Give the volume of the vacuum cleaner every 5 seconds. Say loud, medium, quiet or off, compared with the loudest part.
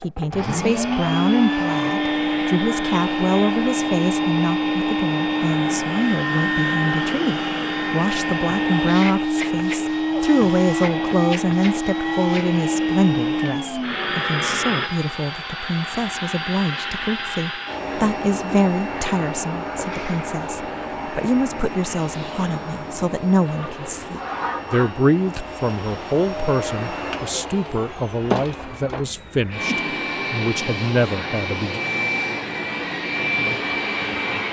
loud, loud, loud, medium, medium, medium, loud.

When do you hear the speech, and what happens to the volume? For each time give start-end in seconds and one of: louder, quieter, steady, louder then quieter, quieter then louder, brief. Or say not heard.
0.0-31.8 steady.